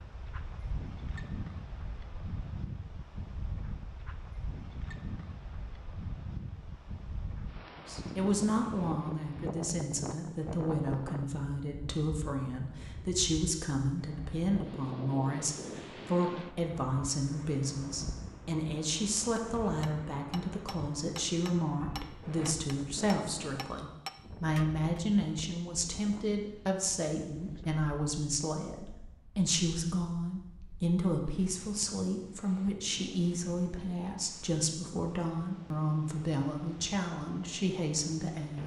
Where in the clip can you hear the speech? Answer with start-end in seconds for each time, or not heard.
7.8-38.6.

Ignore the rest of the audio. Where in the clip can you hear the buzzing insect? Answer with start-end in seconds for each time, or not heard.
not heard.